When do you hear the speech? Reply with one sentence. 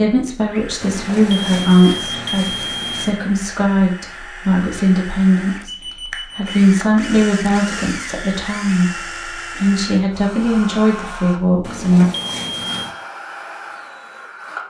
The speech can be heard from 0.0 to 12.1 s.